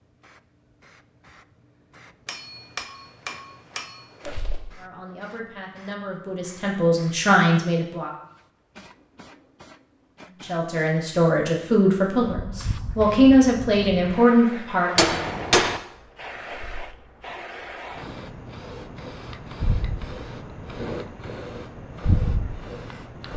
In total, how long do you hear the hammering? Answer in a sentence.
The hammering can be heard for 3 seconds in total.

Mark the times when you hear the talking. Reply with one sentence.
The talking can be heard from 4.8 to 8.1 s and from 10.4 to 15.1 s.